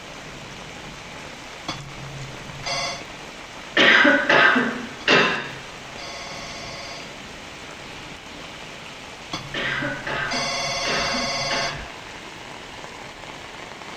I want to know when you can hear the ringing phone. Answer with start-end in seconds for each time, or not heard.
1.6-3.0, 5.0-7.1, 9.3-11.9.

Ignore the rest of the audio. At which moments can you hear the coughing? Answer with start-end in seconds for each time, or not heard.
3.8-5.3, 9.5-11.7.